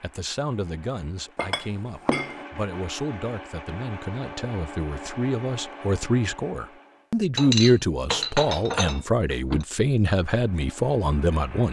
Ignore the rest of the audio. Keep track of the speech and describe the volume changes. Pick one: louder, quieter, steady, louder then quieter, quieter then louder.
louder.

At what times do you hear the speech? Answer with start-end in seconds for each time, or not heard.
0.0-11.6.